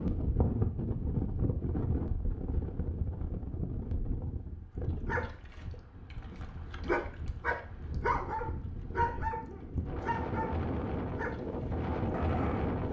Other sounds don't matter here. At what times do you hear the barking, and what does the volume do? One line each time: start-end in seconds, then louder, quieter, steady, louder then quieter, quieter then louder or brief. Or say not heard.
5.0-12.7 louder then quieter.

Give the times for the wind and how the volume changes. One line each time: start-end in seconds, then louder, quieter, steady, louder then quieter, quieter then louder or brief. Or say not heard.
0.0-12.8 quieter then louder.